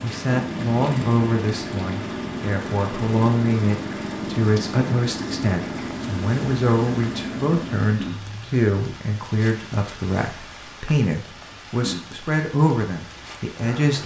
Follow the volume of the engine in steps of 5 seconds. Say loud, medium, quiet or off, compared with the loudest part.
loud, loud, off.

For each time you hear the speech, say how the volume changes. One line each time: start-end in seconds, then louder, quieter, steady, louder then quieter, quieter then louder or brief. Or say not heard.
0.0-14.0 steady.